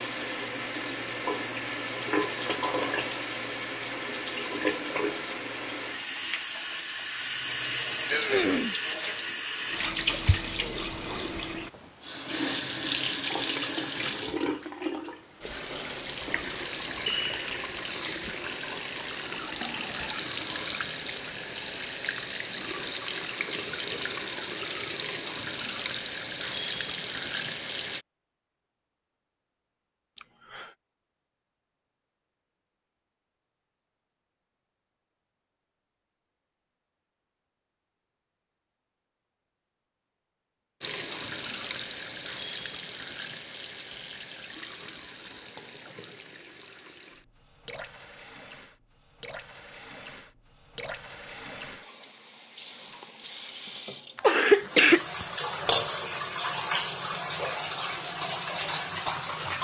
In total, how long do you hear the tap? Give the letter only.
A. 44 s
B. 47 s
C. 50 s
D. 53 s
B.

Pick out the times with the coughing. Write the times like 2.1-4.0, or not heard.
8.1-8.8, 30.1-30.7, 54.1-55.2.